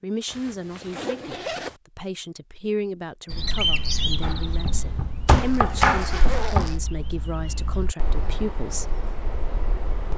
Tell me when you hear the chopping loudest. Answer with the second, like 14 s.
6 s.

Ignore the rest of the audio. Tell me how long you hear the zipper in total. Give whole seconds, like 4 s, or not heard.
3 s.